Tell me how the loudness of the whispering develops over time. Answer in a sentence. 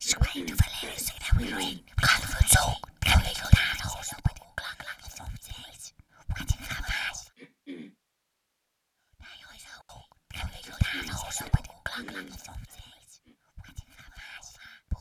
The volume of the whispering goes down.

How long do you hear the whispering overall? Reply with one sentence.
You can hear the whispering for 13 seconds altogether.